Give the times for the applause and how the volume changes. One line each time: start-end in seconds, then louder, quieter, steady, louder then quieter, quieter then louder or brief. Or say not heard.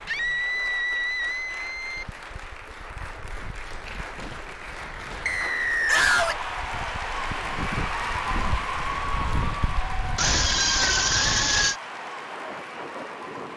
0.0-13.5 louder then quieter.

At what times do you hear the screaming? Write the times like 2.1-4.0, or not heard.
0.1-2.0, 5.8-6.4, 10.2-11.8.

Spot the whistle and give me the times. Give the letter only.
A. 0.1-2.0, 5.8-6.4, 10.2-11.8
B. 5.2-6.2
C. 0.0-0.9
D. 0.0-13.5
B.